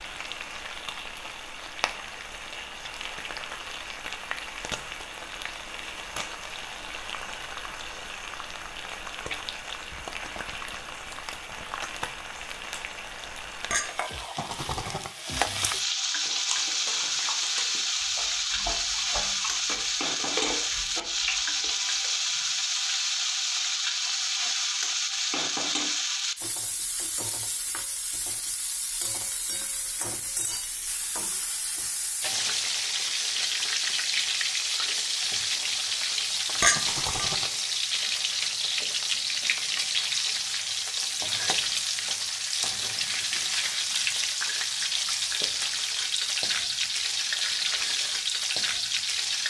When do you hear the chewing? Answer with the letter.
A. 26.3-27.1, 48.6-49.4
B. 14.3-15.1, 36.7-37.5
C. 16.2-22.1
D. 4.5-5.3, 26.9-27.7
C.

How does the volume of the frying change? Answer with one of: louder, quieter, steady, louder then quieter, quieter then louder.
louder.